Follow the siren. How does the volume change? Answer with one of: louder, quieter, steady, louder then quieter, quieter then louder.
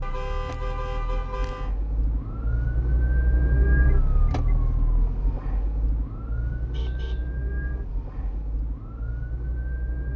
louder then quieter.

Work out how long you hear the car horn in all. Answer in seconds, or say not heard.
4 s.